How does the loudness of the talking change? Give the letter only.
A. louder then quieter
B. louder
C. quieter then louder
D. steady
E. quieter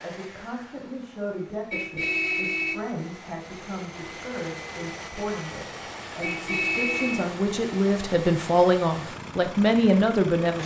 B.